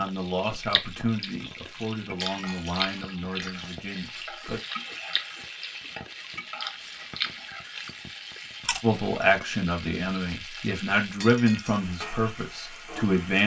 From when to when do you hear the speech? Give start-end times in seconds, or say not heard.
0.0-4.6, 8.8-13.4.